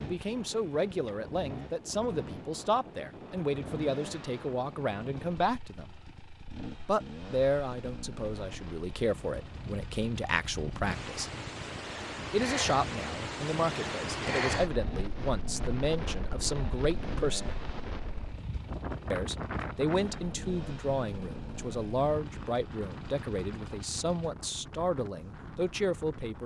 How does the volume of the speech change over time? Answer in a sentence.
The volume of the speech stays about the same.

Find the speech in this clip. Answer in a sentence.
You can hear the speech from 0.0 to 5.9 s, from 6.8 to 11.3 s, from 12.3 to 17.6 s and from 19.1 to 26.4 s.